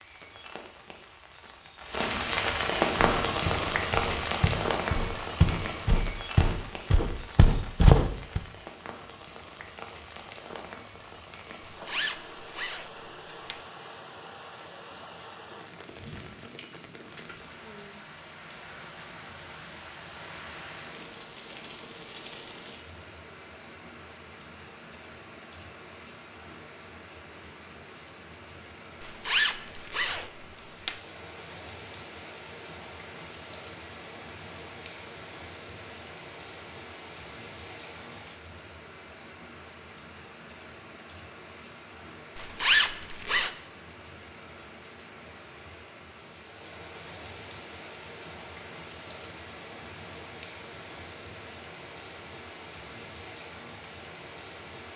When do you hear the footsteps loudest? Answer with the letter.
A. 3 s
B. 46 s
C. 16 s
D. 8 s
D.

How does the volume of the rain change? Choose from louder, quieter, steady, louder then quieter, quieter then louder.
quieter.